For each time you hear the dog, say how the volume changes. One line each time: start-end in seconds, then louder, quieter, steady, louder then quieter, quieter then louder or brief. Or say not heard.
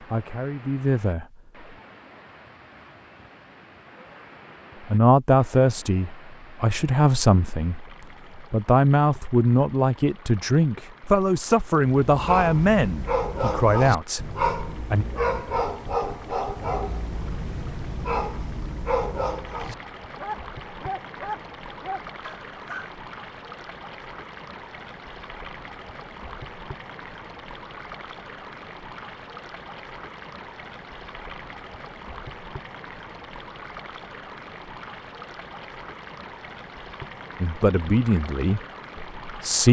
11.8-22.9 quieter.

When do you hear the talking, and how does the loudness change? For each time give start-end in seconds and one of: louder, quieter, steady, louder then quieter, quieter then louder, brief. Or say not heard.
0.1-1.2 brief
4.8-15.1 steady
37.4-39.6 brief.